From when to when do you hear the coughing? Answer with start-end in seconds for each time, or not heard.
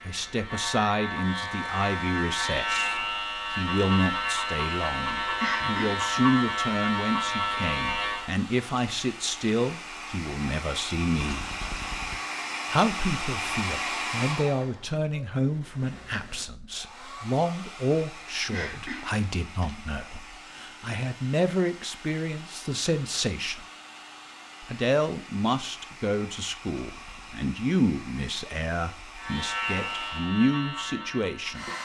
5.4-6.0, 18.5-19.7.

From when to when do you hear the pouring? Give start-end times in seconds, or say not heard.
11.2-12.2, 26.9-27.4.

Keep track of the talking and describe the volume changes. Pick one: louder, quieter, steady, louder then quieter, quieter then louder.
steady.